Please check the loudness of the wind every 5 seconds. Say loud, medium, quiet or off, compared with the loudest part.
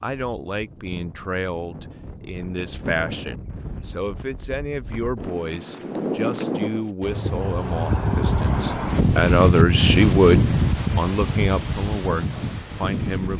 quiet, loud, loud.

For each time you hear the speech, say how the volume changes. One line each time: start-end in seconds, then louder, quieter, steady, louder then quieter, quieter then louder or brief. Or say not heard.
0.0-13.3 louder then quieter.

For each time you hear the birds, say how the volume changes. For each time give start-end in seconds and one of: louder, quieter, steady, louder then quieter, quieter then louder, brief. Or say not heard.
not heard.